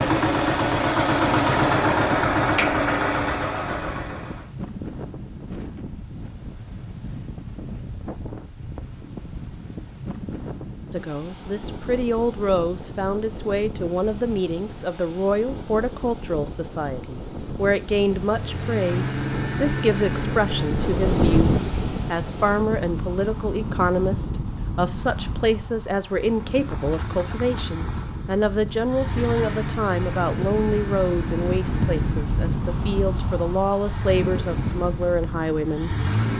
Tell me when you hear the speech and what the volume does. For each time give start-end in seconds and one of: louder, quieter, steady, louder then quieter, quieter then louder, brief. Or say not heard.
10.9-36.0 steady.